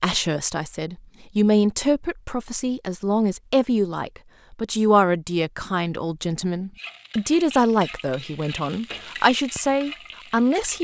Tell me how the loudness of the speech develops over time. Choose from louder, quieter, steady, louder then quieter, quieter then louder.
steady.